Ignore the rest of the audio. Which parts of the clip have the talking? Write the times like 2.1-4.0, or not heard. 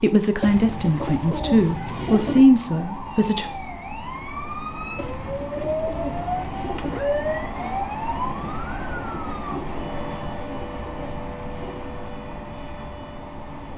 0.0-3.5.